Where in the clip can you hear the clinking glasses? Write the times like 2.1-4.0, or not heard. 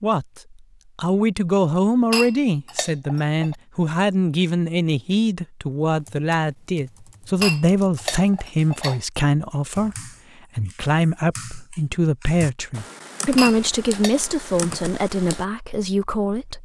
2.1-3.5, 7.4-9.0, 13.3-14.2.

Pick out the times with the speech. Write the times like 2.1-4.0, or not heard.
0.0-16.5.